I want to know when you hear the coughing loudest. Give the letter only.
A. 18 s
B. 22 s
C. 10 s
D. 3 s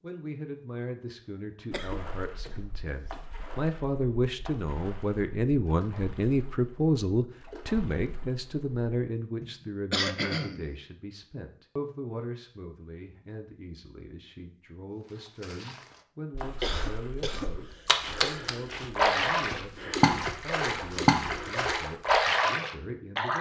C.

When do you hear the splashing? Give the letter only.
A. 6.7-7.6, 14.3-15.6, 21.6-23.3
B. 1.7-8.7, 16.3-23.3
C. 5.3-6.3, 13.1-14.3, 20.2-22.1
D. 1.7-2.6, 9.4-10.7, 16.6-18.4
B.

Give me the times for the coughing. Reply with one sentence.
The coughing can be heard from 1.7 to 2.6 s, from 9.4 to 10.7 s and from 16.6 to 18.4 s.